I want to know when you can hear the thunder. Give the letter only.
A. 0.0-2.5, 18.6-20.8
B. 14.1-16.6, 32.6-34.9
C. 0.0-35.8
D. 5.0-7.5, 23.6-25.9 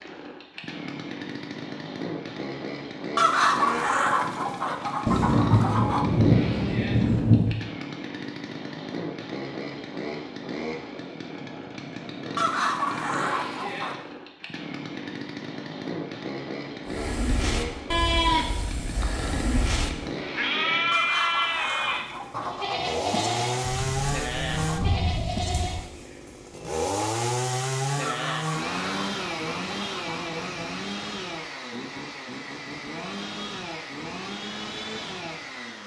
D.